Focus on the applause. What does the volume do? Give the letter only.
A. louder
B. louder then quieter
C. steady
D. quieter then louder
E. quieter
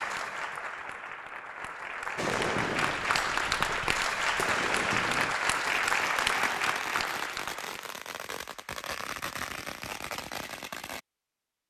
A.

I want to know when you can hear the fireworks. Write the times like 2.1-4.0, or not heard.
2.1-11.0.